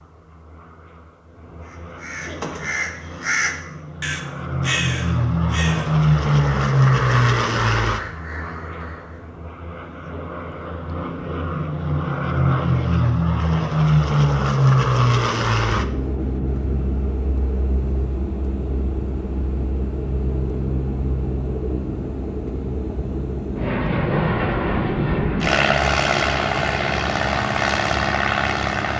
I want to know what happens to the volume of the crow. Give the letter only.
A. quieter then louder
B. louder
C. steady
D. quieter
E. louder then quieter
D.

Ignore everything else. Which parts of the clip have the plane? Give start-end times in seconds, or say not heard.
0.0-28.9.